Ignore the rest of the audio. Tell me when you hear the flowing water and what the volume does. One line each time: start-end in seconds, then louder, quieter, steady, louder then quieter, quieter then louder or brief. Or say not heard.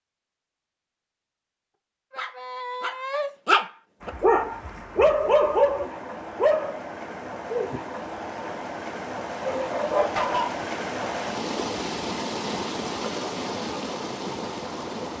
4.0-15.1 louder.